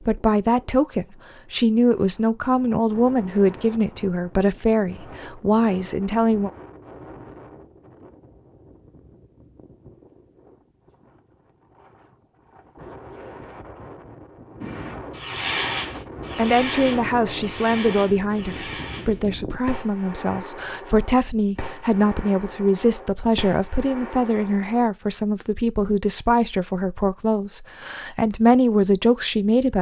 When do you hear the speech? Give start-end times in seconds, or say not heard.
0.1-6.5, 16.4-29.7.